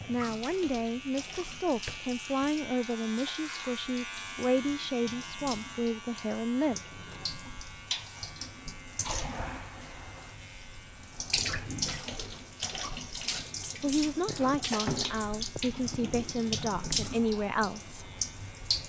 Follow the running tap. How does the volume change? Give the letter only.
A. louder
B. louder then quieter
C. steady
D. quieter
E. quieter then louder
A.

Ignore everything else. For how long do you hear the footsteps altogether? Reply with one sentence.
You can't hear the footsteps here.